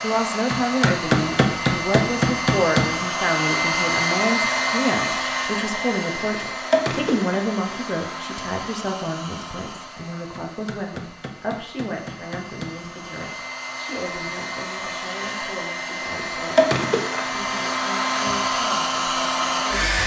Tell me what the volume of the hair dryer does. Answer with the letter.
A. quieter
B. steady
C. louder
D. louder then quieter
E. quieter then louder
E.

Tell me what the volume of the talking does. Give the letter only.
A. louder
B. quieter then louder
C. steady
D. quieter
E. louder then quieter
D.